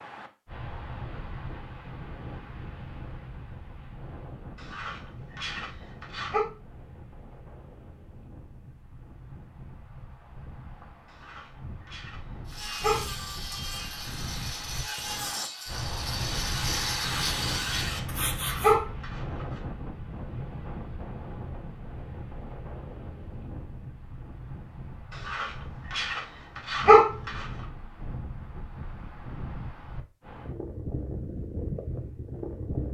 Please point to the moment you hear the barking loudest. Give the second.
27 s.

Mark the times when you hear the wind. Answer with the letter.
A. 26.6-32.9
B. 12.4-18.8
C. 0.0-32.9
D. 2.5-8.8
C.